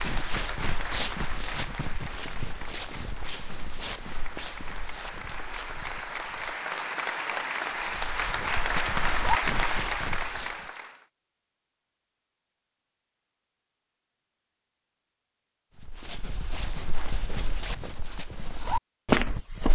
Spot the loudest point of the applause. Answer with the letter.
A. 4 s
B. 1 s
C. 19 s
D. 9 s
D.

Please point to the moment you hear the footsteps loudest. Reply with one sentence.
The loudest moment of the footsteps is at 19 seconds.